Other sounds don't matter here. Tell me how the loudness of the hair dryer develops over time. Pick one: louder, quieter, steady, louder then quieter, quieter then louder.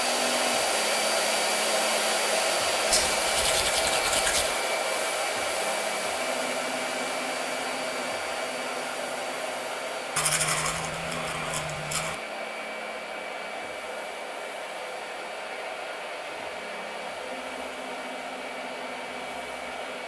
quieter.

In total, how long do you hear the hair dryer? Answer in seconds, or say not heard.
20 s.